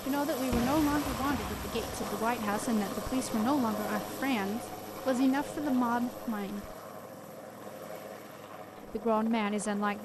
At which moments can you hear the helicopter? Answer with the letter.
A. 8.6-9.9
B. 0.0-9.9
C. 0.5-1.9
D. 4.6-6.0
B.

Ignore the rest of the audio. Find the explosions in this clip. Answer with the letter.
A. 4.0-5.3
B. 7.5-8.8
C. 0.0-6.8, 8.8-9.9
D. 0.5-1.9
D.